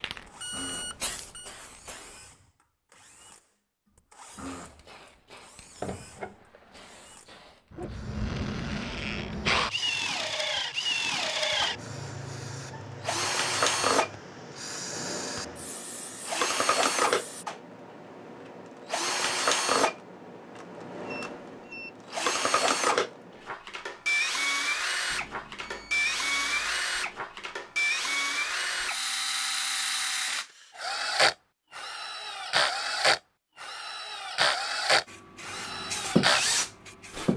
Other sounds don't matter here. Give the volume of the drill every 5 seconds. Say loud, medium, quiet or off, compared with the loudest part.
quiet, medium, loud, loud, loud, loud, loud, loud.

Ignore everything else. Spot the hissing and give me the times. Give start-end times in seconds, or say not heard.
0.0-2.2, 4.2-17.4, 35.0-37.3.